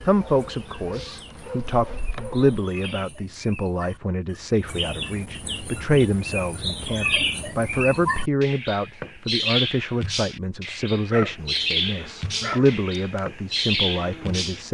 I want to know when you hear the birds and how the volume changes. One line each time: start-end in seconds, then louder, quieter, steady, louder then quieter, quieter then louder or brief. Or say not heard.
0.0-14.7 louder.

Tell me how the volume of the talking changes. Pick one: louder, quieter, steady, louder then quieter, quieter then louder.
steady.